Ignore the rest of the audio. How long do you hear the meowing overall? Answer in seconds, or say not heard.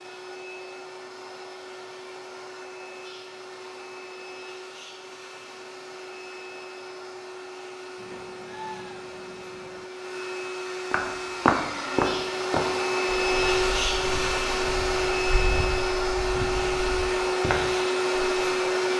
2 s.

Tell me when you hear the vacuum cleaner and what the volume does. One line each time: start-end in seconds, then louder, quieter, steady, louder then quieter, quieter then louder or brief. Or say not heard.
0.0-18.9 louder.